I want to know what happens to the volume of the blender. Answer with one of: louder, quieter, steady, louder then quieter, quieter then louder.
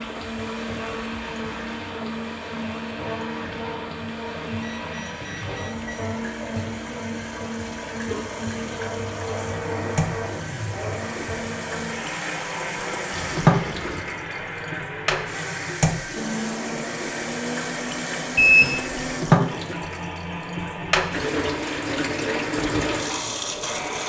steady.